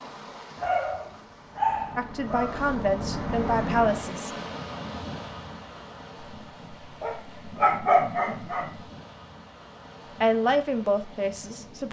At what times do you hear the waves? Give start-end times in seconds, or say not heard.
0.0-11.8.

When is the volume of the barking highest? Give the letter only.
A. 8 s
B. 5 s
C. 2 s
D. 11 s
A.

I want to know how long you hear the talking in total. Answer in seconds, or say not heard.
4 s.